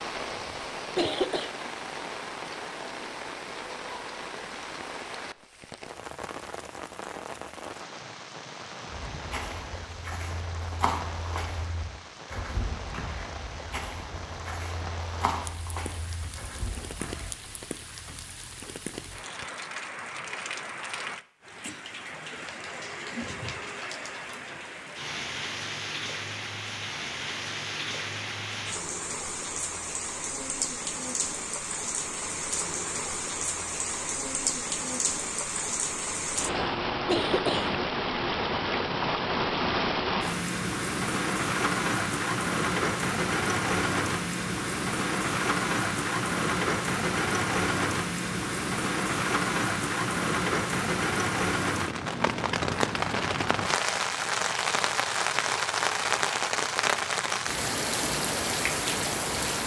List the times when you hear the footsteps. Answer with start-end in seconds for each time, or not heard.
8.9-17.3.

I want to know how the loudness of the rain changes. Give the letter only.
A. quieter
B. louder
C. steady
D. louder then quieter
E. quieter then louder
B.